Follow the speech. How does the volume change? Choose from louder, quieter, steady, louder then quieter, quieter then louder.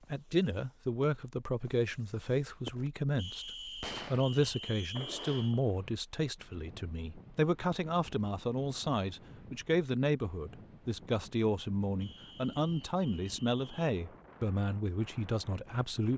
steady.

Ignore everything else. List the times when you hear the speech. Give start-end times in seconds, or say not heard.
0.1-16.1.